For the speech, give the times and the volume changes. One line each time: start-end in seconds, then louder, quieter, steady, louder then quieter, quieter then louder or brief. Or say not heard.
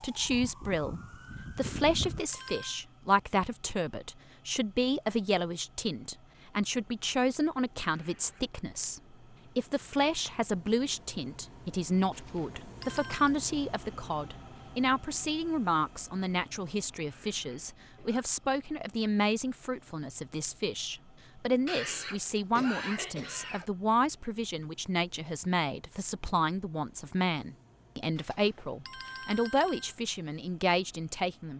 0.0-31.5 steady.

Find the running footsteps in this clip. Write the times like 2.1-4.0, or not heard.
not heard.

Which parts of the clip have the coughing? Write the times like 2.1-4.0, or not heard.
8.0-8.6, 17.1-18.2, 21.6-23.6.